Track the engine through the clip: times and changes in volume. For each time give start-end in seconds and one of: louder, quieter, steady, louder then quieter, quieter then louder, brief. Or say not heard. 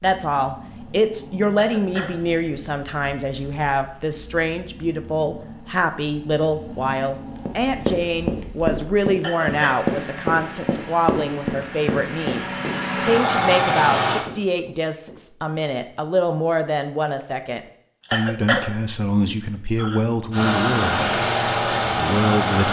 0.0-14.2 louder
20.3-22.6 brief.